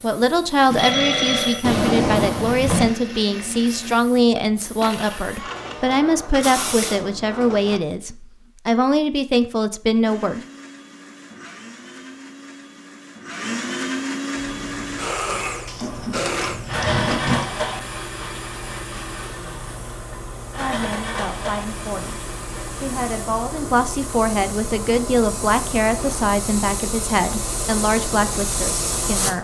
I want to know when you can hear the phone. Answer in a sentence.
The phone can be heard from 0.7 to 1.6 s.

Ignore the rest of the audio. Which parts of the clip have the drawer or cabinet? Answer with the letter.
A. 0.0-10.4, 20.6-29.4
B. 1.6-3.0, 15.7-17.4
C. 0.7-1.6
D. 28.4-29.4
B.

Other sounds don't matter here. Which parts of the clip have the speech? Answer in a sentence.
You can hear the speech from 0.0 to 10.4 s and from 20.6 to 29.4 s.